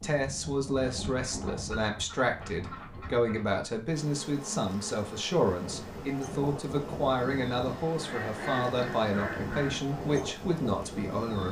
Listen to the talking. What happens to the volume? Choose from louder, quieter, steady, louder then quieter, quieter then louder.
steady.